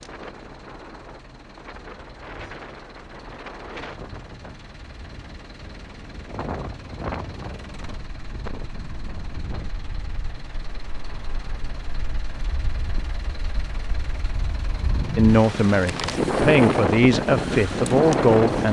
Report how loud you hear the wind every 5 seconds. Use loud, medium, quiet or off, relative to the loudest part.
quiet, quiet, quiet, loud.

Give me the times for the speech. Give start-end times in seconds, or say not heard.
15.2-18.6.